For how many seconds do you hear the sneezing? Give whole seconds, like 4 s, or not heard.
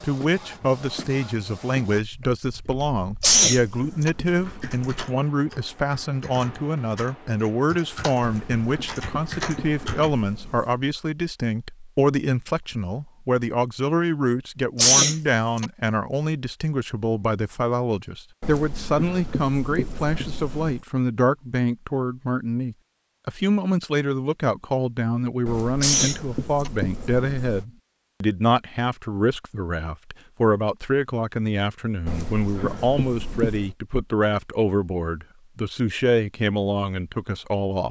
3 s.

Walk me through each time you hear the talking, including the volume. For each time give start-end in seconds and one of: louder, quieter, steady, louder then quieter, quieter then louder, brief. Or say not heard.
0.0-37.8 steady.